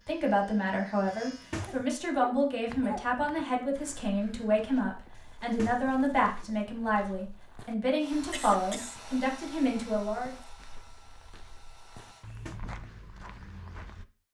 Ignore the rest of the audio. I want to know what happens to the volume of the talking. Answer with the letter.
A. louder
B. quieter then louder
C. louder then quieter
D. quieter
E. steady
E.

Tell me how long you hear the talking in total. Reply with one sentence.
You can hear the talking for 10 seconds altogether.